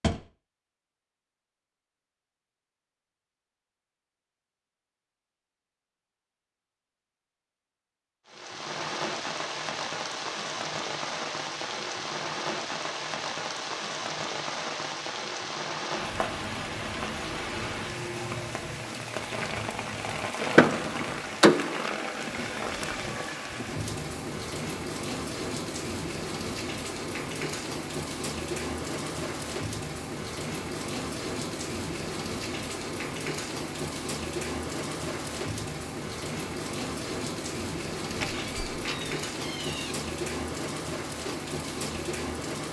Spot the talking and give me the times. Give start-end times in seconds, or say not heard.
not heard.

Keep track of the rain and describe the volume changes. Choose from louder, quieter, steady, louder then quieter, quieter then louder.
steady.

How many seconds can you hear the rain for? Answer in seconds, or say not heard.
34 s.